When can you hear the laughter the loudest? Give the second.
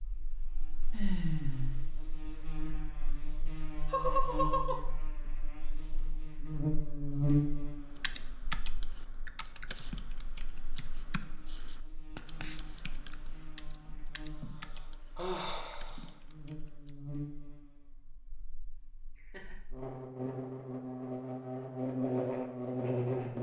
4 s.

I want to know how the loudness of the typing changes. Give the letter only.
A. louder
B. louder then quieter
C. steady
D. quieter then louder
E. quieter
E.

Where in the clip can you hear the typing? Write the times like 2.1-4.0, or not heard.
8.0-16.9.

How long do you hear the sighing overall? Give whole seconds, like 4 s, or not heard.
3 s.